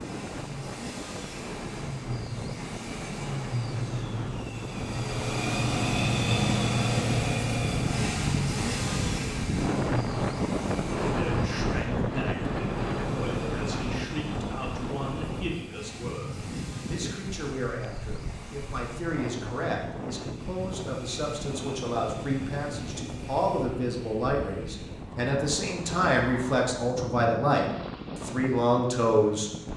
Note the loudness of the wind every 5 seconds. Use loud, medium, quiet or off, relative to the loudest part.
medium, loud, loud, medium, medium, medium.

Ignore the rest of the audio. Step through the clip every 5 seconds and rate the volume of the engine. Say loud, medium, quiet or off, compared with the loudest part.
medium, loud, medium, quiet, quiet, quiet.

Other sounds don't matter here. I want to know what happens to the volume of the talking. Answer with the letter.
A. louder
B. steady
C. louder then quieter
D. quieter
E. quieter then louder
A.